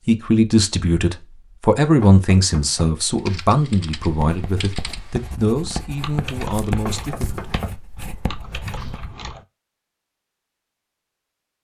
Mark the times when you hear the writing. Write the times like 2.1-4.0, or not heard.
4.0-9.1.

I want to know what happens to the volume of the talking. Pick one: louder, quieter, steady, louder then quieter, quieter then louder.
quieter.